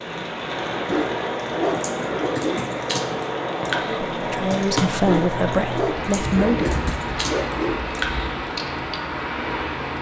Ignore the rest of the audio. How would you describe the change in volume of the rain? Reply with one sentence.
The volume of the rain stays about the same.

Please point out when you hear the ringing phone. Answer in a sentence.
The ringing phone can't be heard in this clip.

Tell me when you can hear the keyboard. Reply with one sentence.
You can hear the keyboard from 1.7 to 9.0 s.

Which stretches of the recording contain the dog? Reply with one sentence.
You can hear the dog from 0.8 to 2.7 s and from 5.0 to 7.8 s.